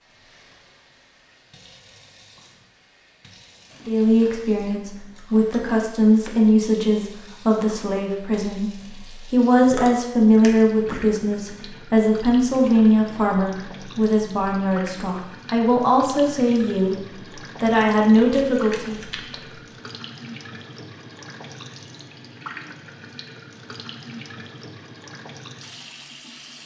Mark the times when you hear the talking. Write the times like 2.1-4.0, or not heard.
3.9-19.0.